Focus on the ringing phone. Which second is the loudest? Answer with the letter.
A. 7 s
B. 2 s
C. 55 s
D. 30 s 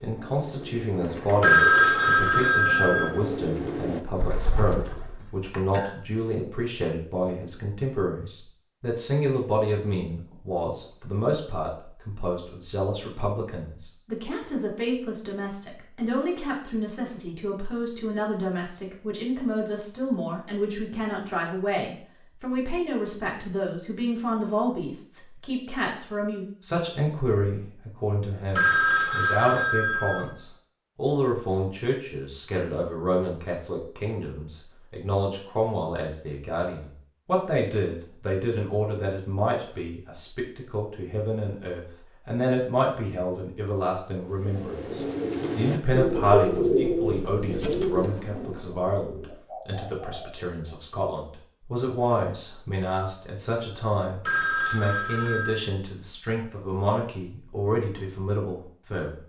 B.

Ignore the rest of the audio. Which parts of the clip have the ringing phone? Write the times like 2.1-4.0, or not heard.
1.4-3.1, 28.6-30.2, 54.2-55.6.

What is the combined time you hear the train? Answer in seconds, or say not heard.
not heard.